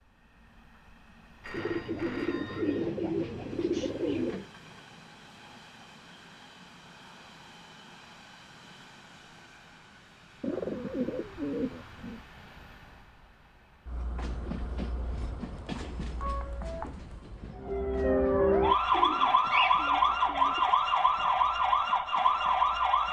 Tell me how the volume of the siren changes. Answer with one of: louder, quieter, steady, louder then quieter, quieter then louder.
steady.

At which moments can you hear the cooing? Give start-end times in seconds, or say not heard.
1.5-4.5, 10.4-12.2, 18.9-20.7.